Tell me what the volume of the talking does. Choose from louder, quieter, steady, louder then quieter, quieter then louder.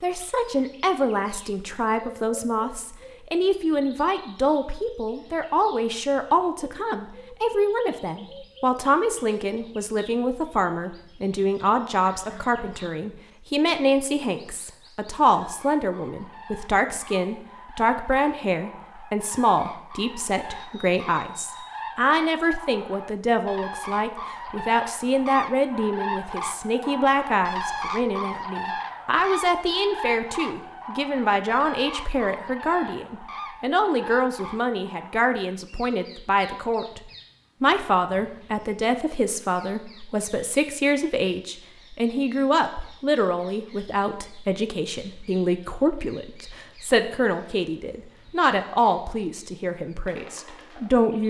steady.